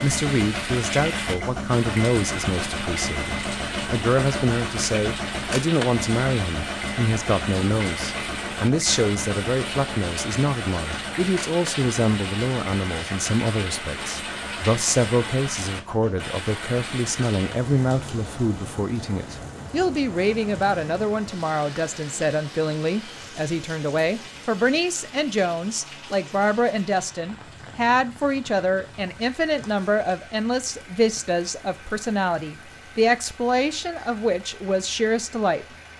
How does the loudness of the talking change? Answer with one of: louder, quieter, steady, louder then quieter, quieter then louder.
steady.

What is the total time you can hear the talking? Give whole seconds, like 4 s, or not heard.
36 s.